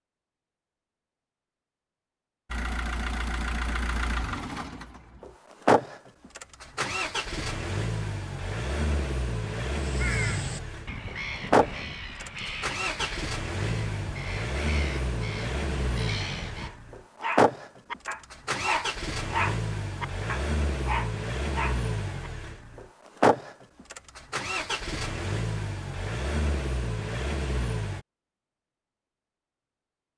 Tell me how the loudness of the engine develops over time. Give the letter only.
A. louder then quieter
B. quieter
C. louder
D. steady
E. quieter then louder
D.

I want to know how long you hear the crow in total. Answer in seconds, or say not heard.
7 s.